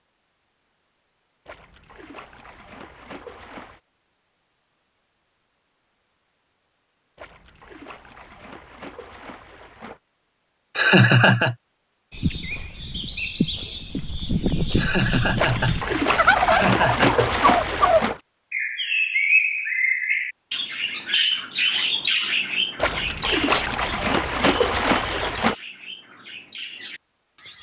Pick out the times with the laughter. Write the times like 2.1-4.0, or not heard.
10.8-11.6, 14.8-17.3.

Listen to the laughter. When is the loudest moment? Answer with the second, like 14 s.
11 s.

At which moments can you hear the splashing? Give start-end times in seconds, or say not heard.
1.4-3.8, 7.2-10.0, 15.3-18.2, 22.8-25.6.